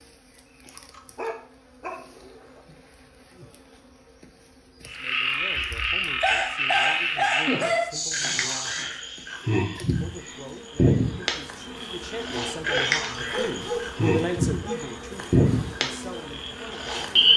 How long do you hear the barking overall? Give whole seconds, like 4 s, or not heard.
7 s.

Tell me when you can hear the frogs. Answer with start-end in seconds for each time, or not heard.
4.8-17.3.